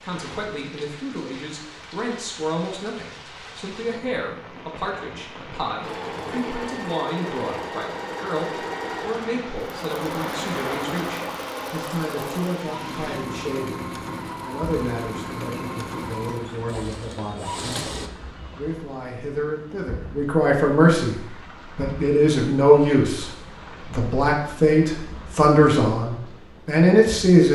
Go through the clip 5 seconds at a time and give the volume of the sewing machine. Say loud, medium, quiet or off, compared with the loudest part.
off, loud, loud, loud, off, off.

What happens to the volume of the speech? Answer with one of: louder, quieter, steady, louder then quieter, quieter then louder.
louder.